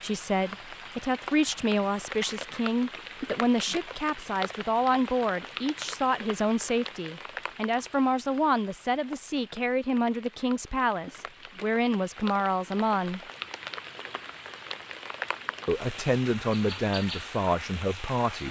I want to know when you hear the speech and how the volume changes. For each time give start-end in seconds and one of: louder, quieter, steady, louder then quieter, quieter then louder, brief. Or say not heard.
0.0-13.2 steady
15.7-18.4 brief.